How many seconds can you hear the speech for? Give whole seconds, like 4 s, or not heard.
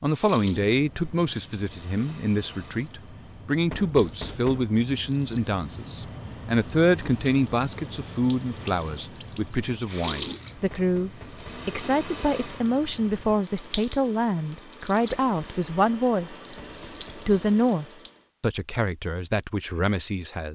20 s.